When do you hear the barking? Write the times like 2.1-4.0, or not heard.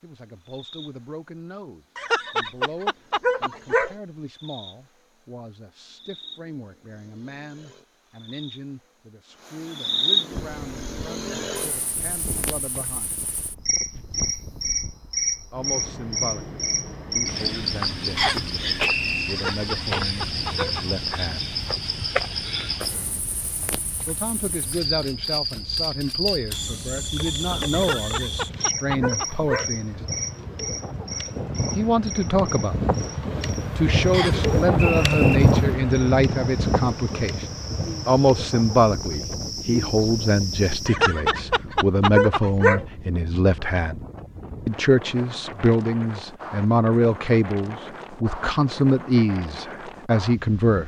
1.9-4.0, 19.2-20.9, 27.7-29.7, 40.9-42.9.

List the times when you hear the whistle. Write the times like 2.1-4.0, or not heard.
18.1-19.4, 34.1-35.4.